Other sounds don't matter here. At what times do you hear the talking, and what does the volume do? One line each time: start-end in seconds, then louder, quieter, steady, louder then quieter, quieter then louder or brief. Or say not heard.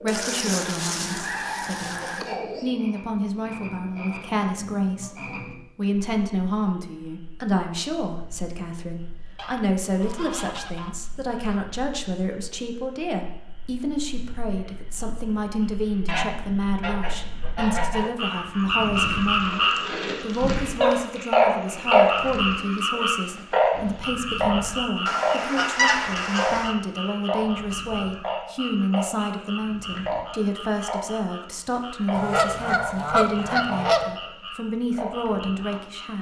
0.0-36.1 steady.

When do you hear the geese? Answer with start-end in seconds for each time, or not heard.
0.1-2.4, 9.3-11.6, 16.1-18.1, 25.1-26.8, 32.1-34.1.